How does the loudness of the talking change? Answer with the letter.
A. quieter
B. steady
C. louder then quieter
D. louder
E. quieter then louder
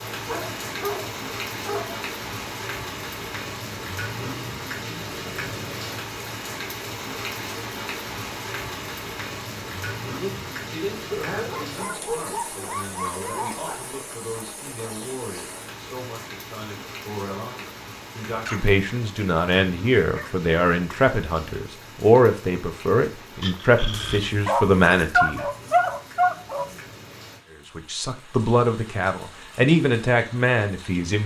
D.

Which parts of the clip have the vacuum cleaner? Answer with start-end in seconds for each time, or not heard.
not heard.